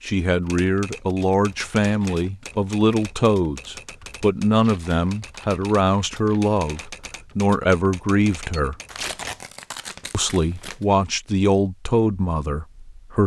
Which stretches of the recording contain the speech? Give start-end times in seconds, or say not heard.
0.0-8.8, 10.1-13.2.